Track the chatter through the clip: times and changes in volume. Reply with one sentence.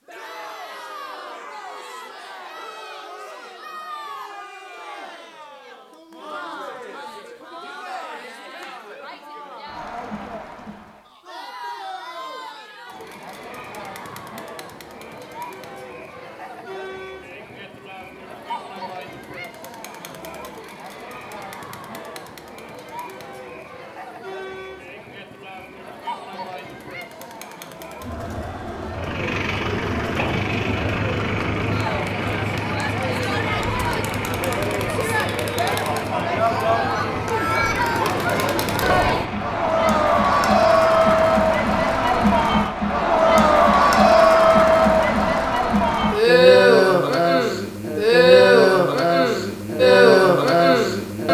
You can hear the chatter from 0.1 to 51.3 s, getting louder.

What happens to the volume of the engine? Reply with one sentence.
The loudness of the engine goes down.